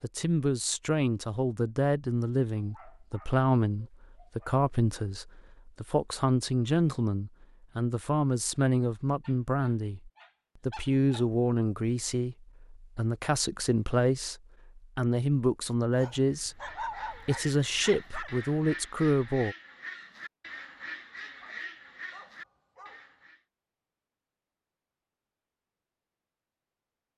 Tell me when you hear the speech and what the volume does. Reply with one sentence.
The speech can be heard from 0.0 to 19.6 s, at a steady volume.